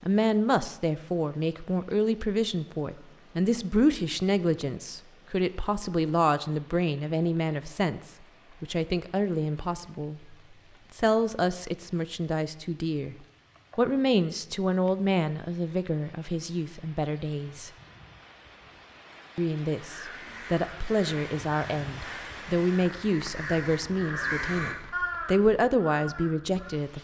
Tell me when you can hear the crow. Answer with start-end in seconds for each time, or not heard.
19.8-26.8.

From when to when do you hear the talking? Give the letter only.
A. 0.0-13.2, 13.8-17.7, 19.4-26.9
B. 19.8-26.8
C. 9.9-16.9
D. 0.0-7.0
A.